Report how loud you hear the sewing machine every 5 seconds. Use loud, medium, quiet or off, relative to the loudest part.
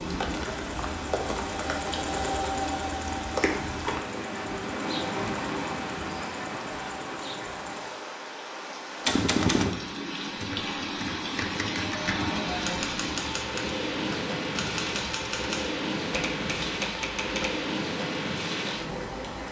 loud, medium, off, off.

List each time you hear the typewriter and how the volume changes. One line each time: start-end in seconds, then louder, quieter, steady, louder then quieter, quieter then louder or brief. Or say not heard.
9.1-17.6 quieter.